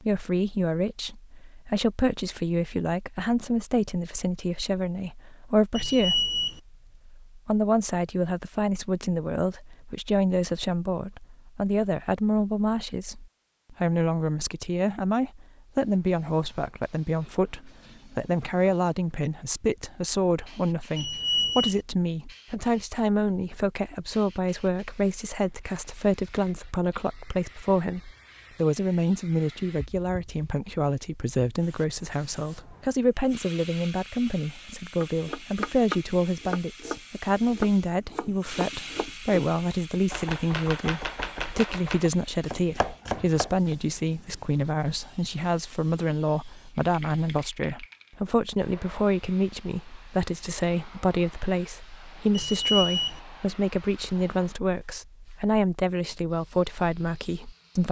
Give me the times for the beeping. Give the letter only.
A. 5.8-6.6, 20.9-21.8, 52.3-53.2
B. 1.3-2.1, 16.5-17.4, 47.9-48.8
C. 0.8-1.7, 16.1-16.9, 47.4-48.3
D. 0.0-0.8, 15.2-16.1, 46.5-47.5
A.